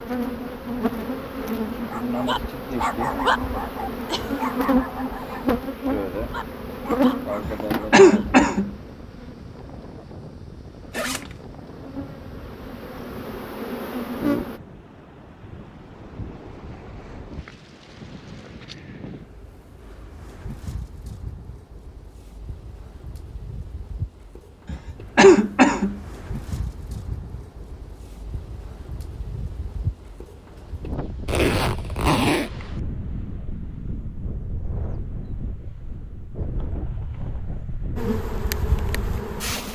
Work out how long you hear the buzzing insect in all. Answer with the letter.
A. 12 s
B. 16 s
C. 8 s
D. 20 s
B.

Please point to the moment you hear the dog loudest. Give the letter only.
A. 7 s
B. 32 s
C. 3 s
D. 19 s
C.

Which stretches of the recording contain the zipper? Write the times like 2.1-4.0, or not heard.
10.9-11.3, 31.2-32.5.